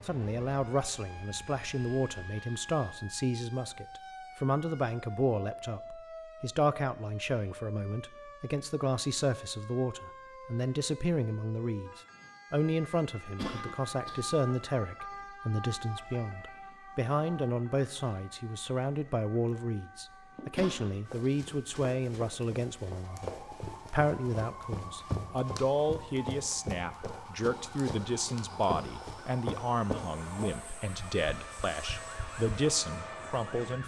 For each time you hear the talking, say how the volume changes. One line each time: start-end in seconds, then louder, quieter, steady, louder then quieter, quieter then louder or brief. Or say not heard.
0.1-33.8 steady.